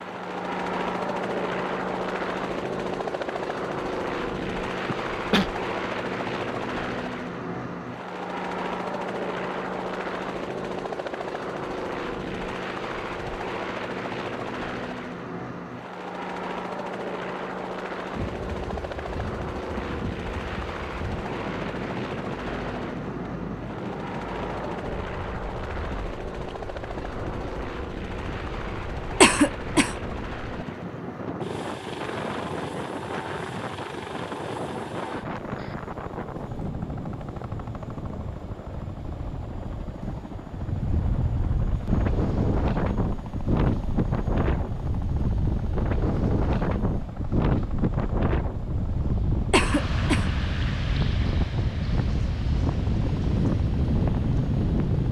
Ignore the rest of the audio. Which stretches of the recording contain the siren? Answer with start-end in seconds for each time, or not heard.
not heard.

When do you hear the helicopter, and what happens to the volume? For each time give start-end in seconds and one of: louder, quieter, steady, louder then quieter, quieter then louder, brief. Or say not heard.
0.0-55.0 quieter.